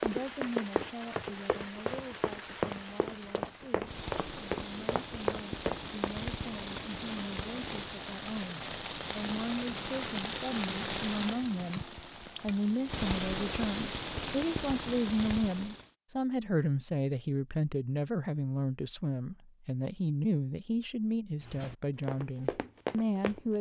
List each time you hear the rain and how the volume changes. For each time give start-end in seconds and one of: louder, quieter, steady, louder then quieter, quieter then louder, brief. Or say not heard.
0.0-15.9 louder.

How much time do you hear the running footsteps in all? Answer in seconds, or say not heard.
8 s.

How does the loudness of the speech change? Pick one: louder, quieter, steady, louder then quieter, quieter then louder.
louder.